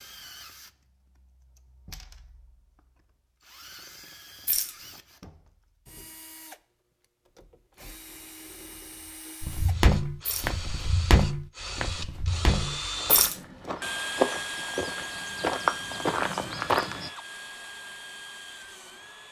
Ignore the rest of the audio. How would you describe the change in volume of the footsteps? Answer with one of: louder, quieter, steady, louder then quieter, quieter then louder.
quieter then louder.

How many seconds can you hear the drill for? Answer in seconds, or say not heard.
19 s.